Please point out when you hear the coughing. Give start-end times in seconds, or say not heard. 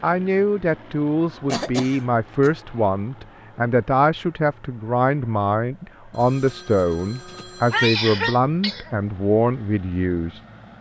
1.4-2.5, 7.7-8.9.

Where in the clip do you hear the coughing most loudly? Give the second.
8 s.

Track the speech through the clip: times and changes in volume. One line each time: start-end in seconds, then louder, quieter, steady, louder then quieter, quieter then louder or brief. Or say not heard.
0.0-10.4 steady.